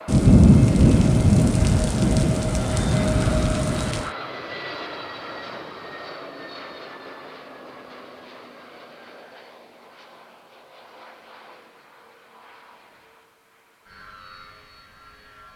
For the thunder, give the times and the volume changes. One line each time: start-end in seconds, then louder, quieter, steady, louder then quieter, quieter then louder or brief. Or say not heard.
0.1-4.1 quieter.